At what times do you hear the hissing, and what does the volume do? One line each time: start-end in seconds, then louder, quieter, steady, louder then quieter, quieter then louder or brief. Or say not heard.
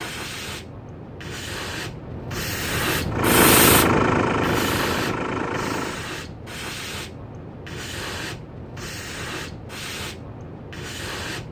0.0-11.4 louder then quieter.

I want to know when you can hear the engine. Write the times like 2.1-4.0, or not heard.
3.1-6.1.